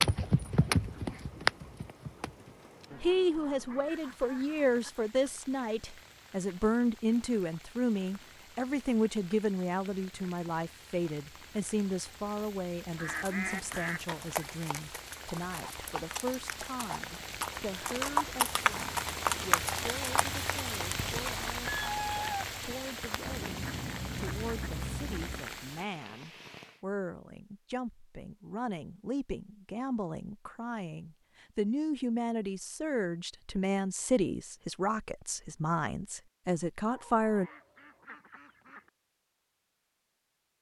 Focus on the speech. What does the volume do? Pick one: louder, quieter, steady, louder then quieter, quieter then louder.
quieter then louder.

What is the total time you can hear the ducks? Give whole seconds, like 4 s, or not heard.
8 s.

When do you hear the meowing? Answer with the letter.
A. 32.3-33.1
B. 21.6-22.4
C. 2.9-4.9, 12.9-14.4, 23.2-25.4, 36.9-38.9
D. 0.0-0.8
B.